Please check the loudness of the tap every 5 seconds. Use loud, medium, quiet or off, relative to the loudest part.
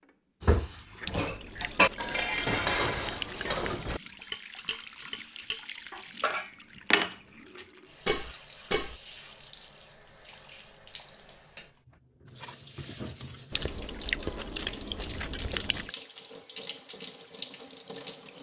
medium, medium, loud, loud.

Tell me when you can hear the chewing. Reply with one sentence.
The chewing can be heard from 1.0 to 3.6 s and from 13.5 to 15.9 s.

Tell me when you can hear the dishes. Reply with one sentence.
You can hear the dishes from 0.4 to 8.9 s.